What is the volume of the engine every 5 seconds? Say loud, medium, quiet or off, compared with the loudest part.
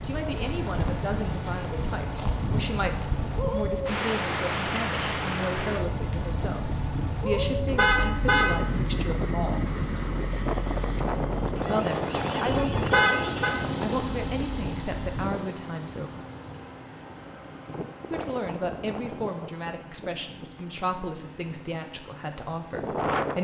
loud, loud, loud, medium, quiet.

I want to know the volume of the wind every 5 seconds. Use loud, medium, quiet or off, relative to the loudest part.
loud, loud, loud, medium, loud.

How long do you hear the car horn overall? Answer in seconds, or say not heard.
2 s.